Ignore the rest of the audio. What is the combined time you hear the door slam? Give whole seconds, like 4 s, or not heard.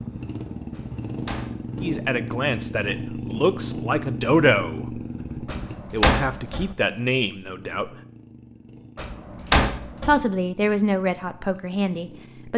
4 s.